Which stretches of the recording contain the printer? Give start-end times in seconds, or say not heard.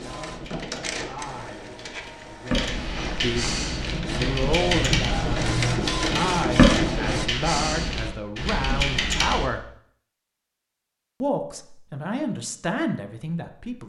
0.0-7.3.